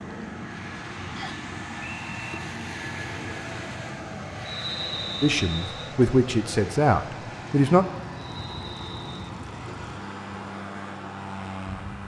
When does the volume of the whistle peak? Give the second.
5 s.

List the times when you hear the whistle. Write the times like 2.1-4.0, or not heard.
1.1-2.4, 4.5-6.0, 8.2-9.3.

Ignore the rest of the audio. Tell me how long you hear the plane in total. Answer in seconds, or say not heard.
12 s.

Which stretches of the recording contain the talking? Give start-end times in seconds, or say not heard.
5.2-7.8.